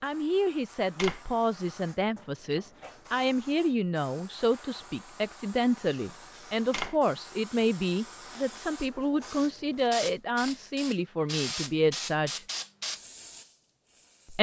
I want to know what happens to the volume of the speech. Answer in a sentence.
The volume of the speech stays about the same.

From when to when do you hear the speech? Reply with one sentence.
The speech can be heard from 0.0 to 12.4 s.